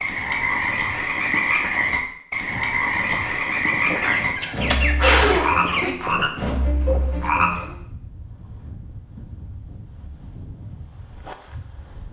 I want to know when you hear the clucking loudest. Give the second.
5 s.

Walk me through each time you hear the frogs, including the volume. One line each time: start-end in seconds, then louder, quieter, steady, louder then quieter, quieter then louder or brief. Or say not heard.
0.0-7.8 steady.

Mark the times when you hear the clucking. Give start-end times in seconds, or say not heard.
4.0-6.0.